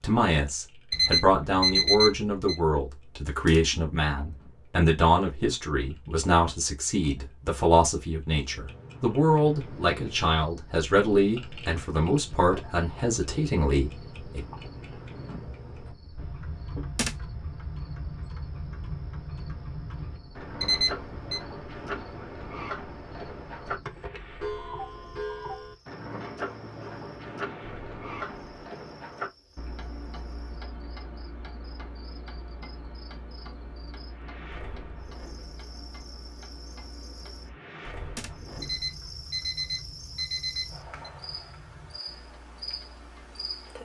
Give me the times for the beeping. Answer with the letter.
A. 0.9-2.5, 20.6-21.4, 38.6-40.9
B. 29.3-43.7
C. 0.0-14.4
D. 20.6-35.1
A.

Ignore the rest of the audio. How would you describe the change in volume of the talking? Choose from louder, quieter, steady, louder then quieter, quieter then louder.
steady.